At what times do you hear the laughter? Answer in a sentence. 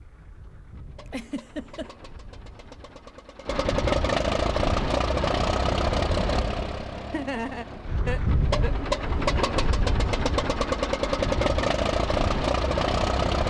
You can hear the laughter from 1.1 to 1.9 s and from 7.1 to 8.8 s.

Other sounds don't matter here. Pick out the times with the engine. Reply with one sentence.
You can hear the engine from 0.0 to 13.4 s.